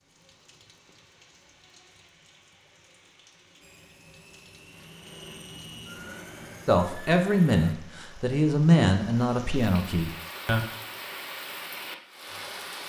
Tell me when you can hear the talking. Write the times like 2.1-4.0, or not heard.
6.7-10.7.